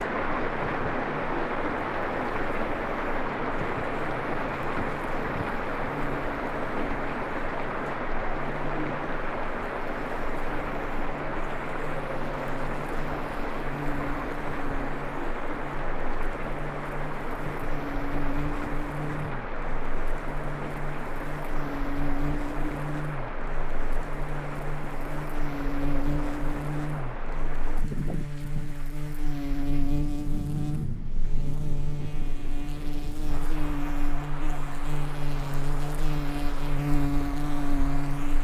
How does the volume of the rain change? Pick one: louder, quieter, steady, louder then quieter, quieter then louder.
quieter.